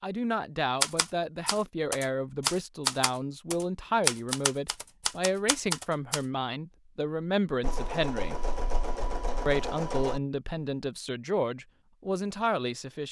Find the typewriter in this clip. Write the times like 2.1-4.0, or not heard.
0.8-6.2.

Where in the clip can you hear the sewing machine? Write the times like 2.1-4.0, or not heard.
7.6-10.2.